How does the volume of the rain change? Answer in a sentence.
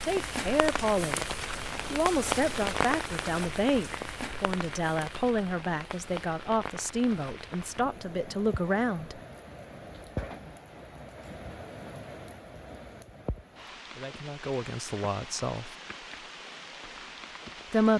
The loudness of the rain goes down.